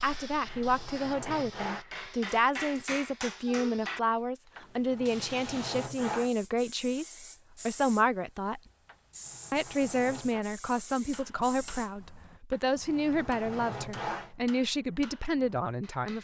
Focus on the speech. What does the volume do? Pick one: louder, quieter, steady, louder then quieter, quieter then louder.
steady.